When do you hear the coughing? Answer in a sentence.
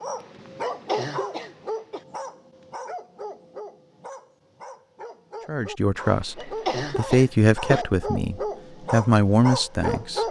The coughing can be heard from 0.2 to 2.0 s and from 6.0 to 7.8 s.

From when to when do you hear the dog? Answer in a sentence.
The dog can be heard from 0.0 to 10.2 s.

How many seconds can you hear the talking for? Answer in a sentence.
You can hear the talking for 5 seconds altogether.